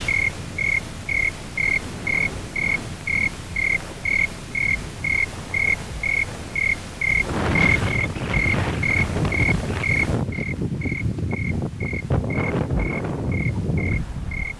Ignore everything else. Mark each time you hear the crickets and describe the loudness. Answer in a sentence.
You can hear the crickets from 0.0 to 14.5 s, getting quieter.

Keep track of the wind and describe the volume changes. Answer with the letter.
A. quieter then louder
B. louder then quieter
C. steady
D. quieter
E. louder
E.